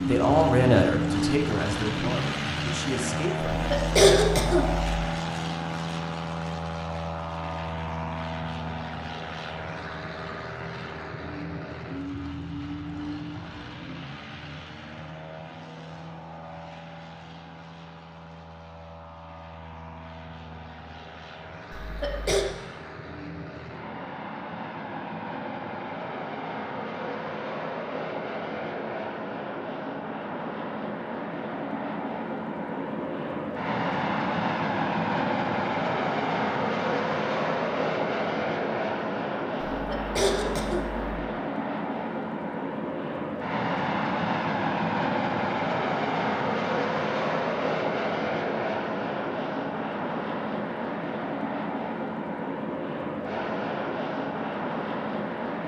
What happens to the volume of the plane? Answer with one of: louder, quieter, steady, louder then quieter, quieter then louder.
quieter then louder.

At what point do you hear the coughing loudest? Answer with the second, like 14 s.
4 s.